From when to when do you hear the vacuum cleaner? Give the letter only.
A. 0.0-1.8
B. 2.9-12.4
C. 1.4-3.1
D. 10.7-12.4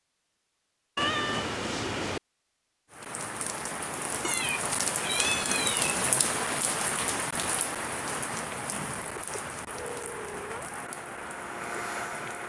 D.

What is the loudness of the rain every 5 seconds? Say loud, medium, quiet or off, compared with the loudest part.
loud, loud, medium.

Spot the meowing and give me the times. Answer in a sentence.
You can hear the meowing from 0.9 to 2.2 s, from 4.2 to 6.2 s and from 9.2 to 10.8 s.